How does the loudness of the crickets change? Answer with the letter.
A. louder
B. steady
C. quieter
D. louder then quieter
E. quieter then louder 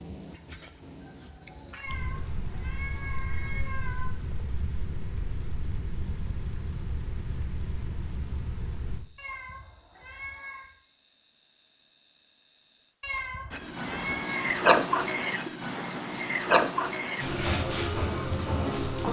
A.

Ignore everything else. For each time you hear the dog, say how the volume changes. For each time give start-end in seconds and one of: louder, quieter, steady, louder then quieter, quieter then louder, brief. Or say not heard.
not heard.